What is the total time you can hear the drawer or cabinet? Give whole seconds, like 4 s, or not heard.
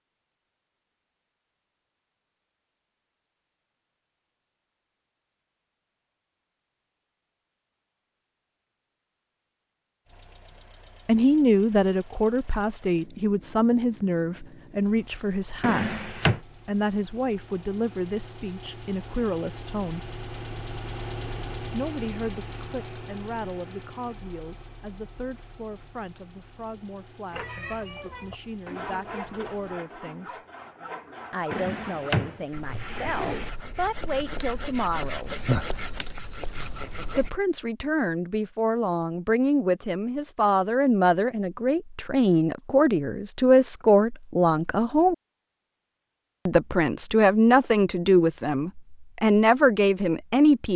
3 s.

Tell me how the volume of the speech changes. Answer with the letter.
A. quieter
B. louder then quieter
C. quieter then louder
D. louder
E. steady
C.